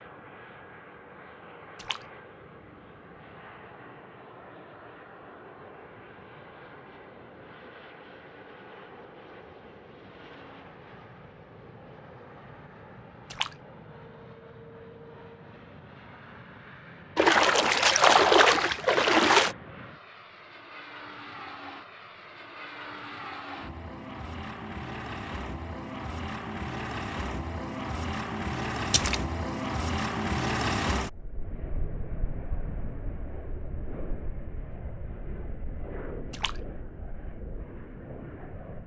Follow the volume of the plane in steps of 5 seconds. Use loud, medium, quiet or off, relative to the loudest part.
quiet, quiet, quiet, quiet, medium, loud, loud, medium.